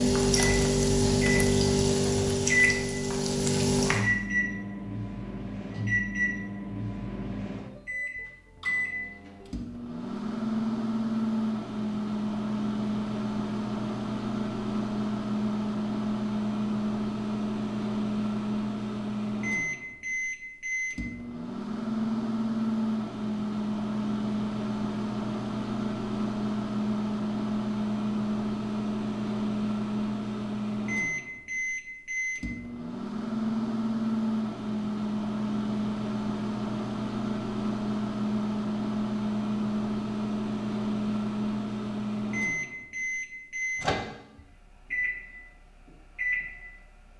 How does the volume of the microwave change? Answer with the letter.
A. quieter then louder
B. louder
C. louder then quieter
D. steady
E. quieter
D.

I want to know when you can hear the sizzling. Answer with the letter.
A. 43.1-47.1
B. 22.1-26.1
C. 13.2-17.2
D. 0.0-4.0
D.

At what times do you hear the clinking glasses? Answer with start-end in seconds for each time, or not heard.
not heard.